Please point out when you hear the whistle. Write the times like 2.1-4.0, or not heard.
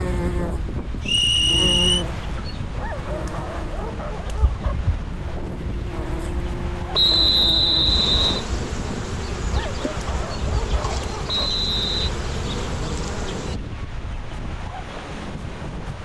1.1-2.0, 6.9-8.4, 11.2-12.1.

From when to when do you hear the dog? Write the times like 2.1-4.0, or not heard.
2.8-4.8, 9.4-11.5.